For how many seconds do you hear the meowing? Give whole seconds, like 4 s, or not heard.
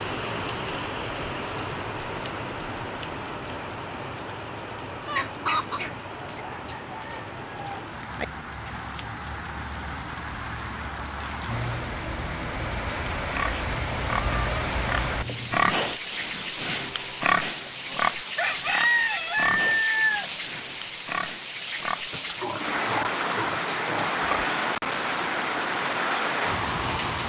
2 s.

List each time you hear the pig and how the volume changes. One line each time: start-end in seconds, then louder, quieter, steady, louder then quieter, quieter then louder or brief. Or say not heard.
13.2-24.6 quieter.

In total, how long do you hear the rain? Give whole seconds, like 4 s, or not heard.
27 s.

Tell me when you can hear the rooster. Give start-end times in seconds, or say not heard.
5.0-8.2, 17.4-20.3.